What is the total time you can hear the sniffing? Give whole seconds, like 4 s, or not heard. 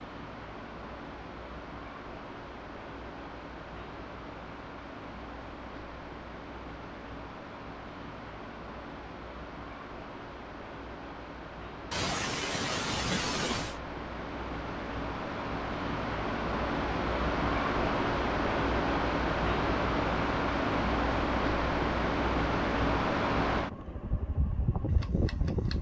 2 s.